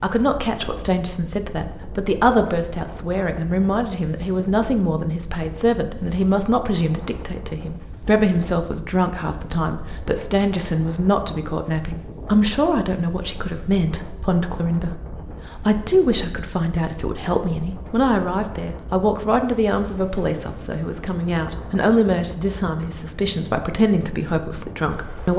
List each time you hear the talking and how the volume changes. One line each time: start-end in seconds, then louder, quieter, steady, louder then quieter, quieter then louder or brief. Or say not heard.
0.0-25.3 steady.